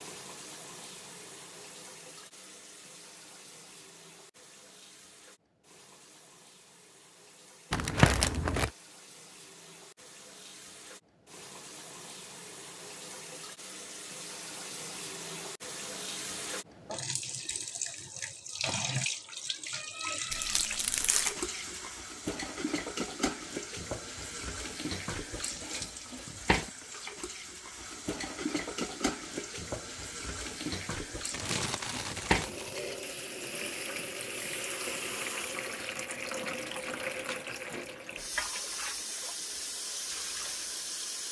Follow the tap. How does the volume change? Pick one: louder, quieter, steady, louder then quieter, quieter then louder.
louder.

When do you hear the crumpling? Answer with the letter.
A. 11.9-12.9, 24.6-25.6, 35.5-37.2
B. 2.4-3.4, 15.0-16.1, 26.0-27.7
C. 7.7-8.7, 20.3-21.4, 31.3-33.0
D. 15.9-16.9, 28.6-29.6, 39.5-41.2
C.